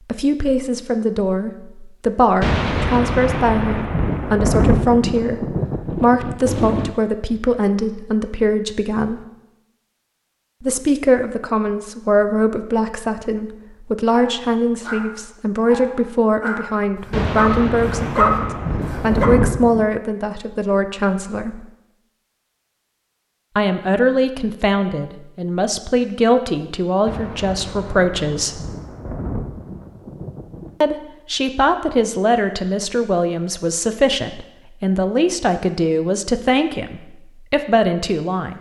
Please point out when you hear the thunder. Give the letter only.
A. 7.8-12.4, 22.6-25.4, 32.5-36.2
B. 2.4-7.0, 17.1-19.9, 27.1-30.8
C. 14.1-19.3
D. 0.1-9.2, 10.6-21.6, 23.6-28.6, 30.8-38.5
B.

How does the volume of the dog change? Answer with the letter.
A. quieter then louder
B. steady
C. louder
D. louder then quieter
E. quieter
C.